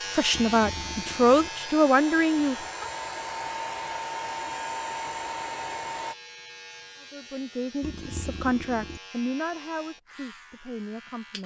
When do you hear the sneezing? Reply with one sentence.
The sneezing can't be heard in this clip.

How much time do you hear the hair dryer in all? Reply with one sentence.
The hair dryer can be heard for 6 seconds in total.